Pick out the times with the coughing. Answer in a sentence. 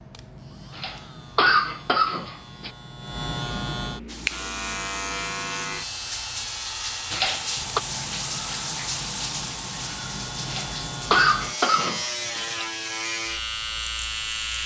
The coughing can be heard from 0.8 to 2.7 s, from 7.1 to 7.8 s and from 10.4 to 12.4 s.